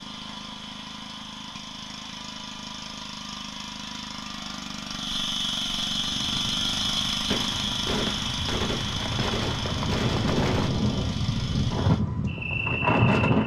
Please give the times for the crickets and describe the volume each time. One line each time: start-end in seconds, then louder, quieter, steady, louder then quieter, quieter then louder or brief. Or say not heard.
0.0-13.4 louder then quieter.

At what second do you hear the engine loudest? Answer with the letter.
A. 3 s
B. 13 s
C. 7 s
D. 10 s
C.